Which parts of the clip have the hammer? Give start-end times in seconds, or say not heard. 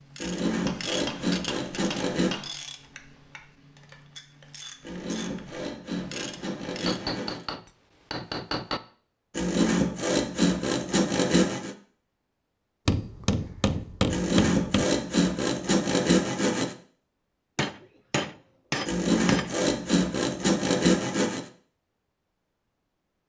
0.7-2.6, 6.8-8.8, 12.8-14.8, 17.6-19.6.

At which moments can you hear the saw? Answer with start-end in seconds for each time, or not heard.
0.2-2.4, 4.8-7.5, 9.3-11.8, 14.1-16.8, 18.9-21.5.